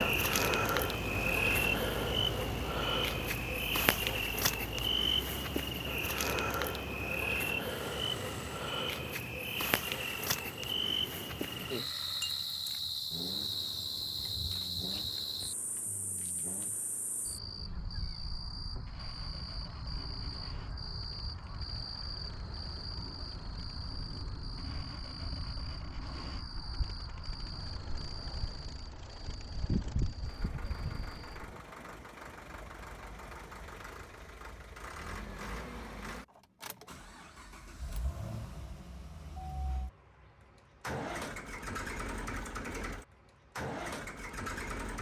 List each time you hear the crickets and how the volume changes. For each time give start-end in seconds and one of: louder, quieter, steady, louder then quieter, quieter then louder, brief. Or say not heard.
0.0-31.5 quieter.